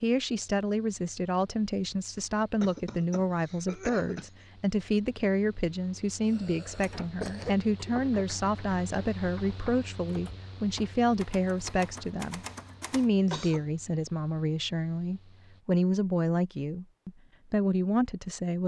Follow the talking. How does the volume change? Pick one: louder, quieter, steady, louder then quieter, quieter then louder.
steady.